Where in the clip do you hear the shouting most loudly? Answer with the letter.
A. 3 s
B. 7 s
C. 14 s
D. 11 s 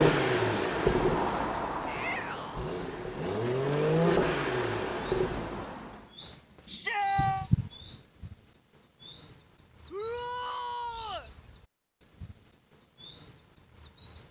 B.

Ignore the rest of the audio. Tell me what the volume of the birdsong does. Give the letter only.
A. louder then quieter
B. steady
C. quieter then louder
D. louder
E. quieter
A.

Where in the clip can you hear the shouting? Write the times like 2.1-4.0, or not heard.
1.9-2.7, 6.7-7.5, 9.9-11.3.